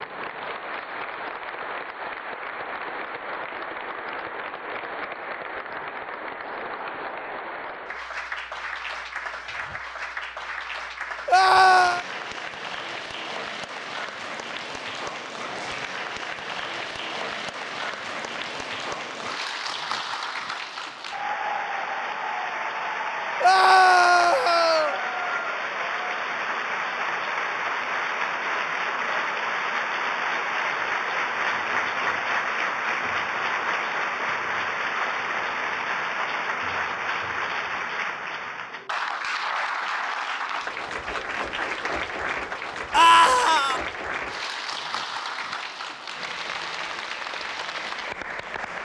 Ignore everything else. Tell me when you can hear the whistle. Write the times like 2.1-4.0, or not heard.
not heard.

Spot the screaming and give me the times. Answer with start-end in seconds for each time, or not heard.
11.2-12.1, 23.4-25.0, 42.9-43.8.